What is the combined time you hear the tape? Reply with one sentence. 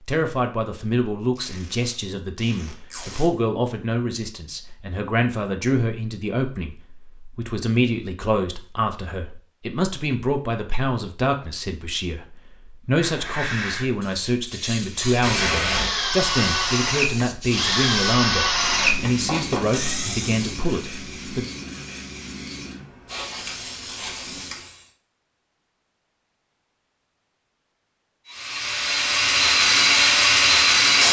You can hear the tape for 4 seconds altogether.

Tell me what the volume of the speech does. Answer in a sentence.
The volume of the speech stays about the same.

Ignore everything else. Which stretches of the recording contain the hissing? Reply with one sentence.
You can hear the hissing from 12.9 to 24.9 s.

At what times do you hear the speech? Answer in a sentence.
You can hear the speech from 0.1 to 21.4 s.